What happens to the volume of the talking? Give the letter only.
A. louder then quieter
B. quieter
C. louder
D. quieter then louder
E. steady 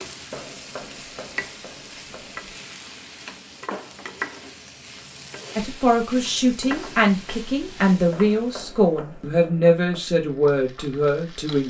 E.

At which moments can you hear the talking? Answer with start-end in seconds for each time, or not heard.
5.5-11.6.